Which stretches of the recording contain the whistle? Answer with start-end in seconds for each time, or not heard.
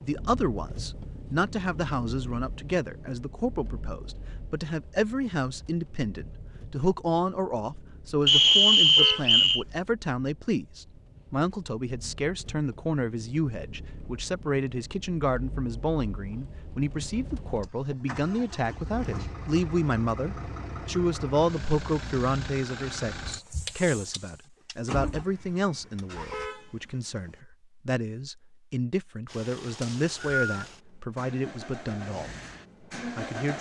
8.2-9.7, 29.8-30.6.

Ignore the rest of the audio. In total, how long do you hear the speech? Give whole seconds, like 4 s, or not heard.
33 s.